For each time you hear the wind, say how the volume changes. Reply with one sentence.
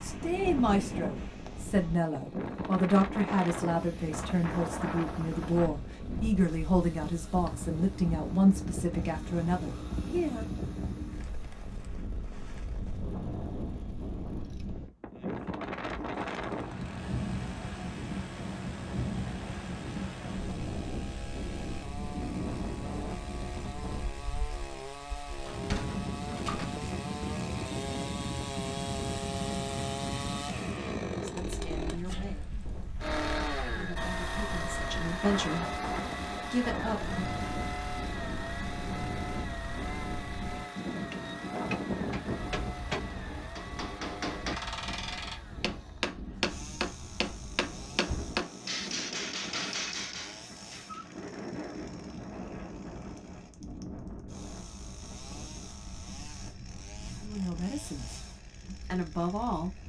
The wind can be heard from 0.0 to 59.8 s, getting quieter.